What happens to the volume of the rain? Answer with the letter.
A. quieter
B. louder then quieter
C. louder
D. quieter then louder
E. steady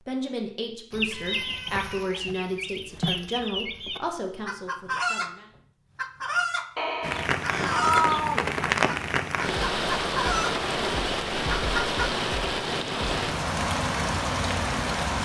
E.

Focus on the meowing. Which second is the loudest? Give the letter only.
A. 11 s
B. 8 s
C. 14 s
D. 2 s
B.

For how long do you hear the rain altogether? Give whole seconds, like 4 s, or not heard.
8 s.